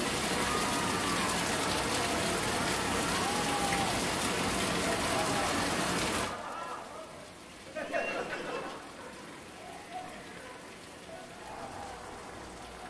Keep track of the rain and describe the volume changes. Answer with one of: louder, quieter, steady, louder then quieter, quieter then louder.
quieter.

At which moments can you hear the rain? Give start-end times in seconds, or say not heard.
0.0-12.8.